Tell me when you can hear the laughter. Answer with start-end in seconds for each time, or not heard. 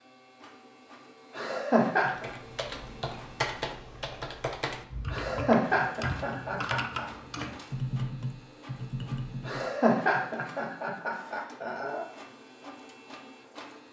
1.4-2.3, 5.1-7.0, 9.4-12.1.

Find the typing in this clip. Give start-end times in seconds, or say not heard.
2.0-9.7.